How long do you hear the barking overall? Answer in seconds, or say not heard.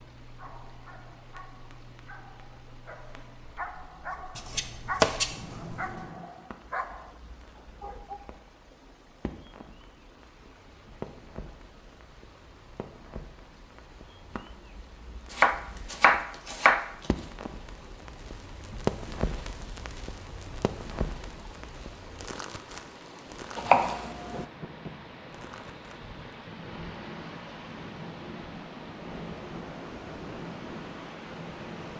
8 s.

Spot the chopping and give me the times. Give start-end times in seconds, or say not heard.
4.3-6.0, 15.3-16.9, 23.6-24.4.